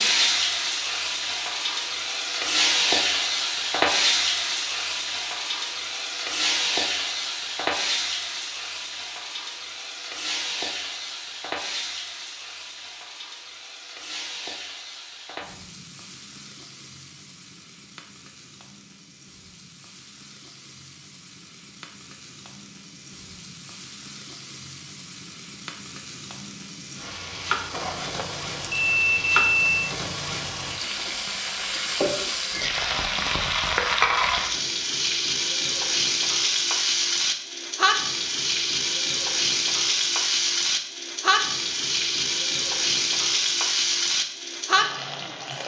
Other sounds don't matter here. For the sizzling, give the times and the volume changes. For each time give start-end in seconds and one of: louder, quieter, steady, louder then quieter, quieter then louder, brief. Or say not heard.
0.0-45.6 quieter then louder.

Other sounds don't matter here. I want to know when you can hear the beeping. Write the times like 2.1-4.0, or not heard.
27.7-29.9.